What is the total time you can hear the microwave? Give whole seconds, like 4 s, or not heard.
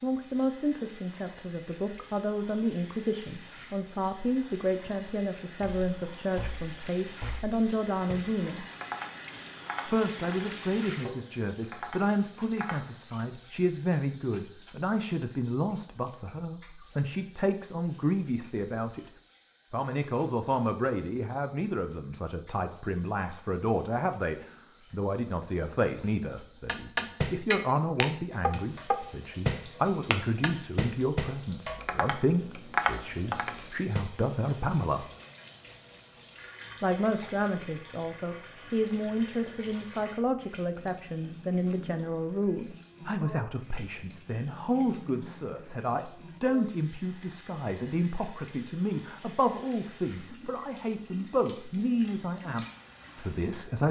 not heard.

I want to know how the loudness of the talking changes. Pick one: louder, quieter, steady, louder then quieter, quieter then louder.
steady.